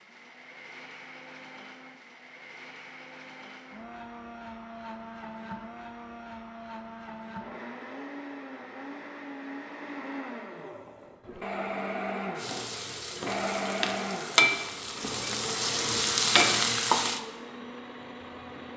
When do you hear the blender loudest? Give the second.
14 s.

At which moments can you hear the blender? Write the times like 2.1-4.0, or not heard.
0.0-18.7.